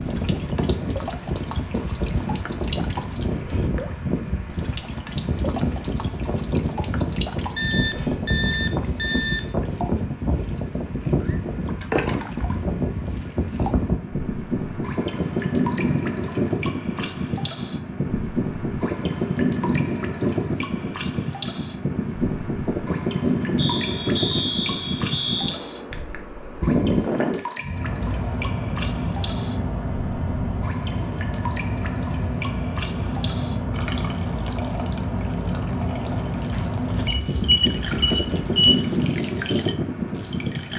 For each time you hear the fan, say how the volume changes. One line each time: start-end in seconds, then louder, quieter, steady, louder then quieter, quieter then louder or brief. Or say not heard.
0.0-40.7 steady.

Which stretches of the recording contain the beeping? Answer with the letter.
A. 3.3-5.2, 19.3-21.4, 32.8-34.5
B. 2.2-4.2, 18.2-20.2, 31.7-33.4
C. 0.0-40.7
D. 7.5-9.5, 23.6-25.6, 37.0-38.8
D.